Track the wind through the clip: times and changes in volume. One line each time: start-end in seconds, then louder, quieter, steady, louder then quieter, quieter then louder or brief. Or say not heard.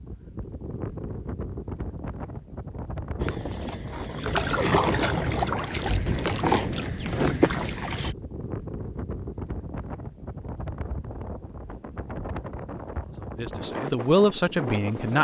0.0-15.1 steady.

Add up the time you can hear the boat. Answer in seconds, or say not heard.
5 s.